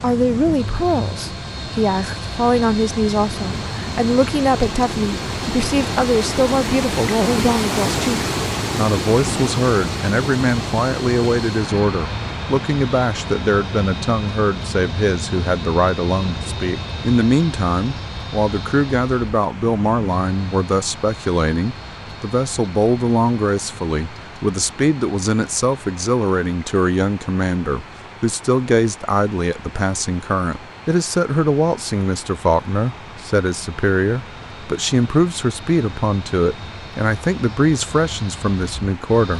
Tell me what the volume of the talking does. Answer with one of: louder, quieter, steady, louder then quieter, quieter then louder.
steady.